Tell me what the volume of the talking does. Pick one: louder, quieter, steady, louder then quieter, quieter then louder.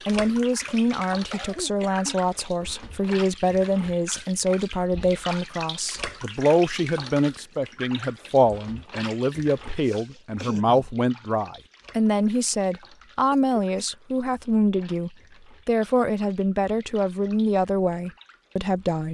steady.